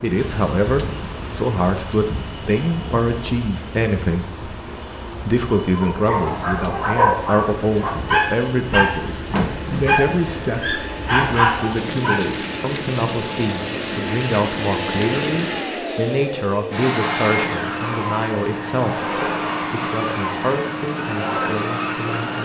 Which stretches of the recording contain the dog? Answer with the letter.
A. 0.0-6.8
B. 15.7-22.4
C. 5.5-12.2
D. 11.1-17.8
C.